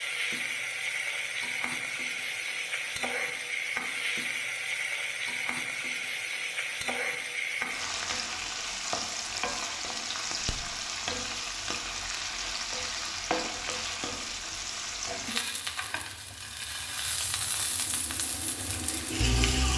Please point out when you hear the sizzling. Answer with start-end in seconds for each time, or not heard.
0.0-19.7.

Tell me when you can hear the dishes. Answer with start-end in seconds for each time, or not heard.
not heard.